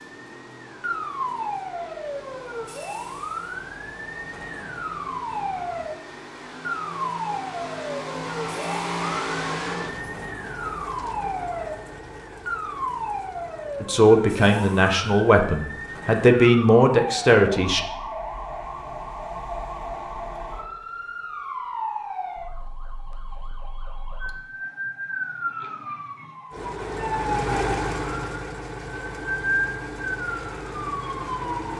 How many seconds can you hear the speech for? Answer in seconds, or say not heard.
4 s.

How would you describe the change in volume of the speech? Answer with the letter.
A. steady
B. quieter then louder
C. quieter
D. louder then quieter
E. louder
B.